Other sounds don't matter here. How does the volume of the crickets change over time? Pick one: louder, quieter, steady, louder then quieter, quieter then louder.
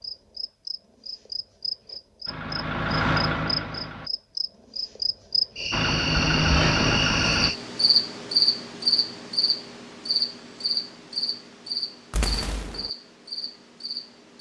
louder then quieter.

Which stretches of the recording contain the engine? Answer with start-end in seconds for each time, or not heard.
2.2-4.1, 5.7-7.5.